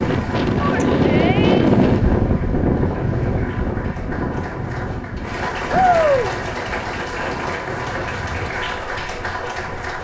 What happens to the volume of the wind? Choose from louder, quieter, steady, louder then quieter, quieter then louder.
quieter.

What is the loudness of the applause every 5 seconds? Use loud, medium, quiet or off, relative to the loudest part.
medium, loud.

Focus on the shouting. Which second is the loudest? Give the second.
6 s.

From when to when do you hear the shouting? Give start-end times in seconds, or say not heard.
0.6-1.7, 5.7-6.3.